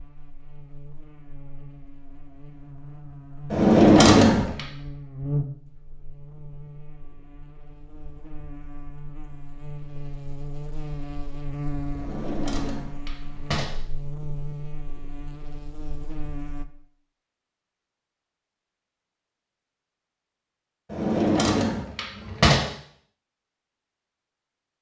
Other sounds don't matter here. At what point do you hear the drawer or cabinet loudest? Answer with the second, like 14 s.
4 s.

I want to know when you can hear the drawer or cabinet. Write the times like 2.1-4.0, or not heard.
3.5-4.6, 11.9-13.7, 20.9-22.6.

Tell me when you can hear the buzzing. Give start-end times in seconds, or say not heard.
0.0-16.6.